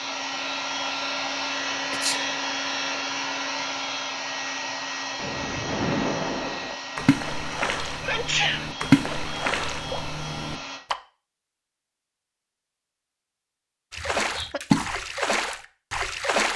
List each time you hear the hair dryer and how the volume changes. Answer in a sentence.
You can hear the hair dryer from 0.0 to 10.8 s, getting quieter.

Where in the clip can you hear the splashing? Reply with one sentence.
The splashing can be heard from 5.2 to 10.9 s and from 13.9 to 16.5 s.